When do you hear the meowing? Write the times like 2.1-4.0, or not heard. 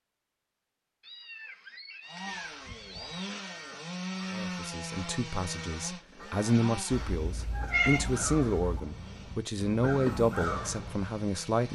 1.0-3.2, 6.9-8.8.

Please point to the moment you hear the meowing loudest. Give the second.
8 s.